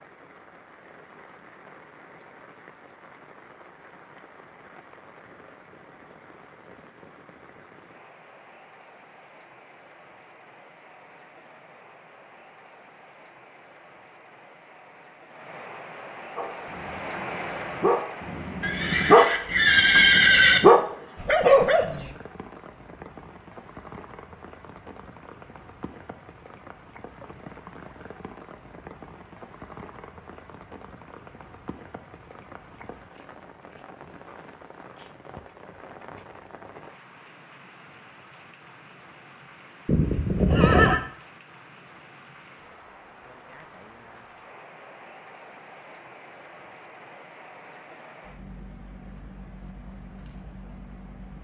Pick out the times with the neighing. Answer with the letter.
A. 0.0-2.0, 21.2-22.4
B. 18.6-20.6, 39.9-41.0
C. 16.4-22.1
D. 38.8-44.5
B.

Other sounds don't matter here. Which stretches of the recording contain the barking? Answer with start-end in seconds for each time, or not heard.
16.4-22.1.